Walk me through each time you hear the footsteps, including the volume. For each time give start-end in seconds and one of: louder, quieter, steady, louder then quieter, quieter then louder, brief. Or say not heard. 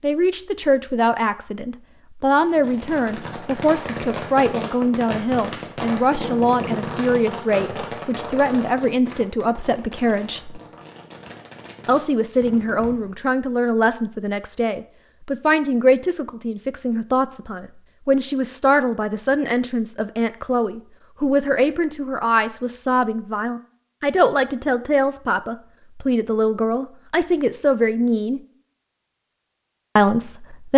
not heard.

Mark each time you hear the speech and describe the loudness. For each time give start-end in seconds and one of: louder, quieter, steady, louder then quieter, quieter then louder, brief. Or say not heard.
0.0-10.6 steady
11.8-28.4 steady
29.9-30.7 brief.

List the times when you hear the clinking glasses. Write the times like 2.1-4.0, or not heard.
not heard.